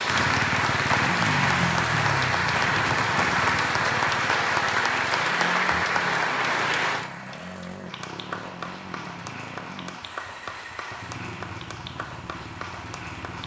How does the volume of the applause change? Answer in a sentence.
The loudness of the applause goes down.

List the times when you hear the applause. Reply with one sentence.
The applause can be heard from 0.0 to 13.4 s.